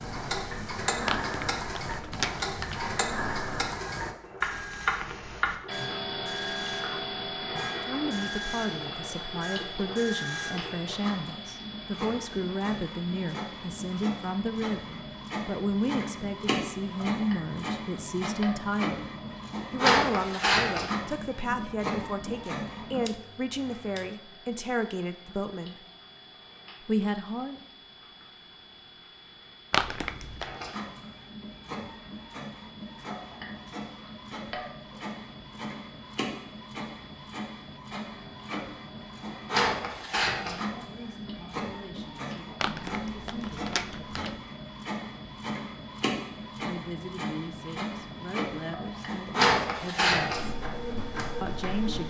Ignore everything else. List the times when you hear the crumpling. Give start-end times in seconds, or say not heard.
1.1-2.9, 29.7-30.5, 42.6-44.4.